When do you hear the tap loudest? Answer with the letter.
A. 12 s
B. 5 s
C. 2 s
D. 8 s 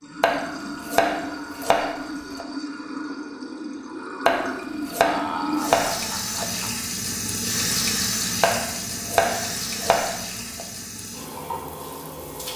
D.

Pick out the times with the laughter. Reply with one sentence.
You can hear the laughter from 5.0 to 6.8 s.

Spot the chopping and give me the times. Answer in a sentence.
You can hear the chopping from 0.2 to 2.5 s, from 4.2 to 6.5 s and from 8.4 to 10.7 s.